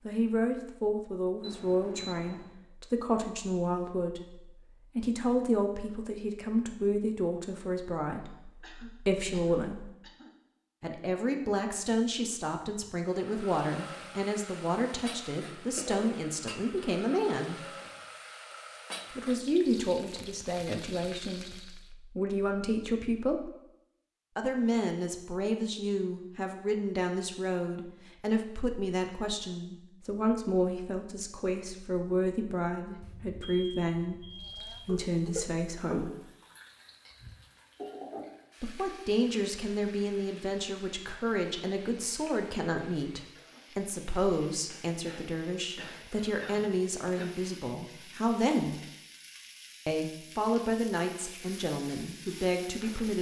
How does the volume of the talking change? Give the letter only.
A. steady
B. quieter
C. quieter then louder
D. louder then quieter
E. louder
A.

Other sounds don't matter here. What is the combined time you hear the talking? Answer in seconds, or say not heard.
46 s.